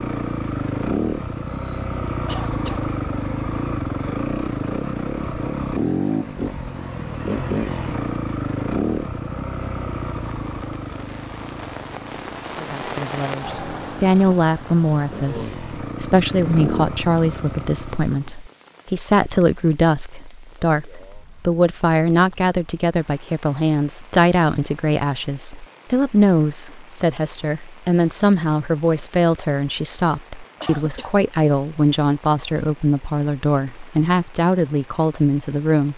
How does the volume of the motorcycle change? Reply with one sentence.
The volume of the motorcycle goes down, then up.